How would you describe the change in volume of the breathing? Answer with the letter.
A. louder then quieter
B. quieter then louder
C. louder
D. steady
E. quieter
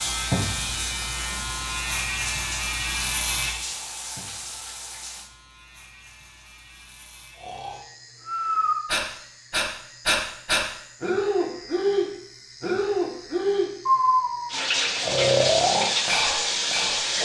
D.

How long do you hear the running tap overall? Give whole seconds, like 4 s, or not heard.
8 s.